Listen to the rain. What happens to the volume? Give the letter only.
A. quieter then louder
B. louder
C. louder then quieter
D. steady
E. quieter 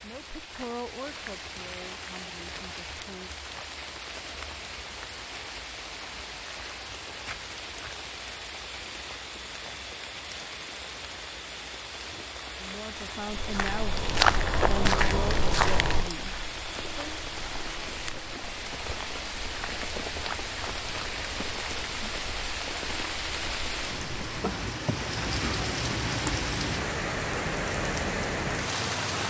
B.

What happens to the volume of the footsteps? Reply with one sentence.
The volume of the footsteps goes down.